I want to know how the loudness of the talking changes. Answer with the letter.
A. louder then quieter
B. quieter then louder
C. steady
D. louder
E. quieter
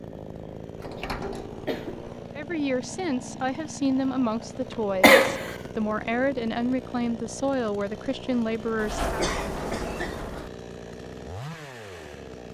C.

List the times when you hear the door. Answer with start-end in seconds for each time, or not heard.
0.8-2.3, 4.5-5.3, 8.8-10.5.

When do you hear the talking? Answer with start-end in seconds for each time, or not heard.
2.4-9.2.